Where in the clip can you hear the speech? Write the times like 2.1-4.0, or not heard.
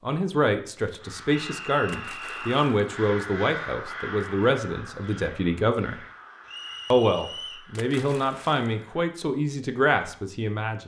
0.1-6.0, 6.9-10.8.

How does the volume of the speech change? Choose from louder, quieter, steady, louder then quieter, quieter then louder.
steady.